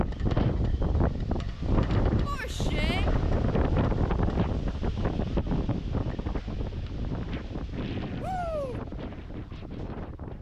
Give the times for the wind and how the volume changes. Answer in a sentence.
You can hear the wind from 0.0 to 10.3 s, getting quieter.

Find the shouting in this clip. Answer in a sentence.
The shouting can be heard from 2.2 to 3.0 s and from 8.2 to 8.8 s.